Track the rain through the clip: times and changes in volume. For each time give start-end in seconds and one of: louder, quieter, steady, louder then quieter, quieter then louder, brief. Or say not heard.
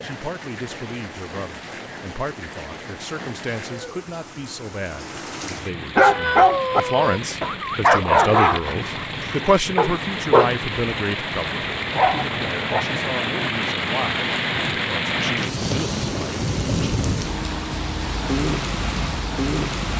0.0-19.9 louder.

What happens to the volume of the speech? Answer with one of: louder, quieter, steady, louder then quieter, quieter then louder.
louder then quieter.